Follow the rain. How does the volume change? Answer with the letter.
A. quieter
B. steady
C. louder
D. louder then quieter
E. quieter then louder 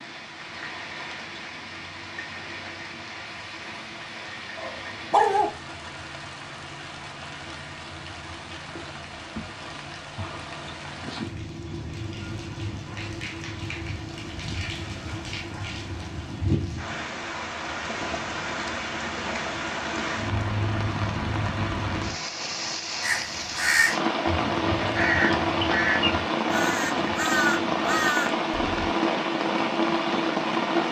C.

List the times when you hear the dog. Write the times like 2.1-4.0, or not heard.
4.5-5.5.